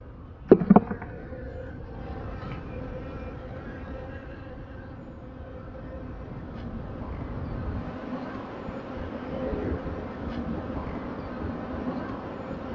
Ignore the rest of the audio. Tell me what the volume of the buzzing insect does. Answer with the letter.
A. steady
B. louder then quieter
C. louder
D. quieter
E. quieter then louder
E.